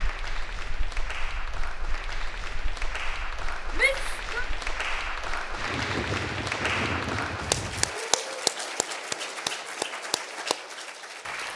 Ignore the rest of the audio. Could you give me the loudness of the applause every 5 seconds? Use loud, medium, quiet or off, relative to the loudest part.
medium, loud, medium.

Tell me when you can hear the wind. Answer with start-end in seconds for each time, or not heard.
0.0-8.0.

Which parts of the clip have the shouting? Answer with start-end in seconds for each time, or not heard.
3.8-4.5.